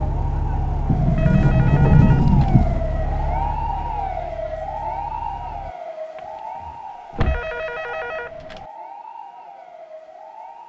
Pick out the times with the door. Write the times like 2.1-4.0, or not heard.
0.8-2.8, 6.2-7.5.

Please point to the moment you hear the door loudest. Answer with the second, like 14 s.
2 s.